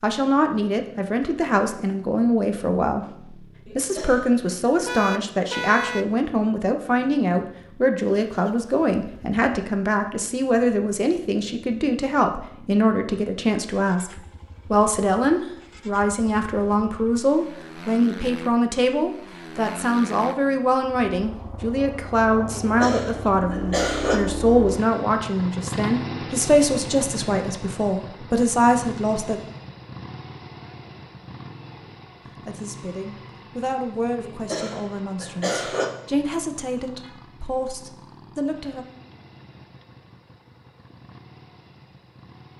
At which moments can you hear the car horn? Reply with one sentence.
You can hear the car horn from 4.8 to 6.0 s and from 37.0 to 37.5 s.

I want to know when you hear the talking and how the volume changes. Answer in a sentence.
You can hear the talking from 0.0 to 29.4 s, at a steady volume; and from 32.4 to 38.9 s, at a steady volume.